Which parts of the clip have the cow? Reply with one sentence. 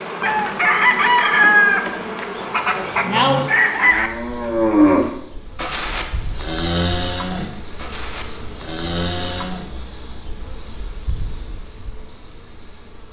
You can hear the cow from 2.8 to 9.7 s.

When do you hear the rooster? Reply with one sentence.
You can hear the rooster from 0.2 to 4.1 s.